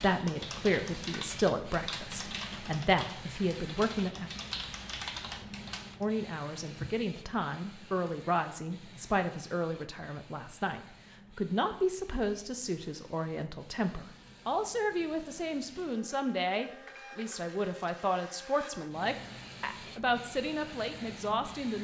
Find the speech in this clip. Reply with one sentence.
The speech can be heard from 0.0 to 4.3 s and from 6.0 to 21.7 s.